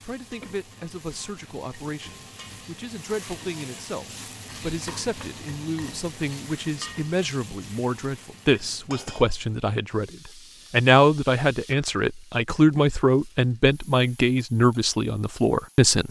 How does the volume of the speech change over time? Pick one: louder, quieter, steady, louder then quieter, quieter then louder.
louder.